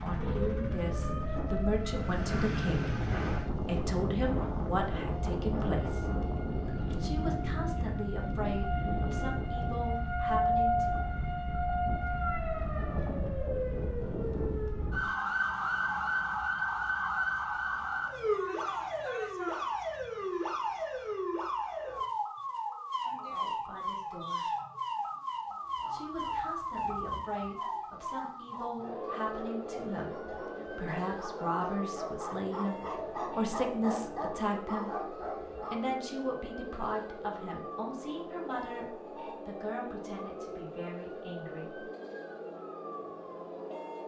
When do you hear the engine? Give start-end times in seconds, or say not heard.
0.0-3.5.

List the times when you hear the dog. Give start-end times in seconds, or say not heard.
25.6-36.0.